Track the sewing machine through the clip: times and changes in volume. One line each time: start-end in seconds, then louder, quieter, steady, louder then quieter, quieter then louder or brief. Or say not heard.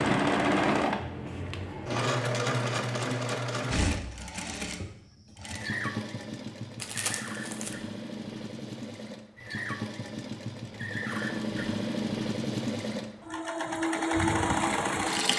0.0-15.3 quieter then louder.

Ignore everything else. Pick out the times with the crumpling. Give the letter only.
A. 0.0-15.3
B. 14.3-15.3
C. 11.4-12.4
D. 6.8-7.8
D.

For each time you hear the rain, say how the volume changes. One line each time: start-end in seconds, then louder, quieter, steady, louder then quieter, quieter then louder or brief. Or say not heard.
not heard.